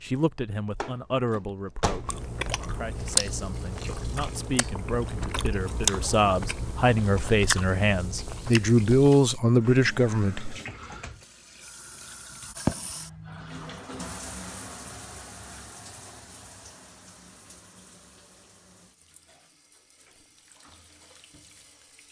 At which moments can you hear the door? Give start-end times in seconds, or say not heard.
0.8-2.2.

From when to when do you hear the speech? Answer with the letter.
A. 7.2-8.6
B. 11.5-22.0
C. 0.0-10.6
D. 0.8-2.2
C.